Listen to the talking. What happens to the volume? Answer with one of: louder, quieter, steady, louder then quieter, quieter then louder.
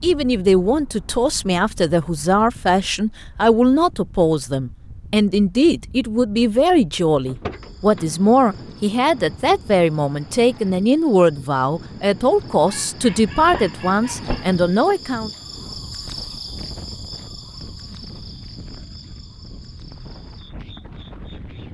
steady.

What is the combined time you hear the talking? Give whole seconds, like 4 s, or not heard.
15 s.